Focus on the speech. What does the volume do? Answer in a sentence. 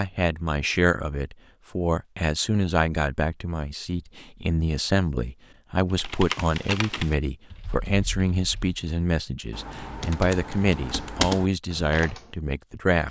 The loudness of the speech stays about the same.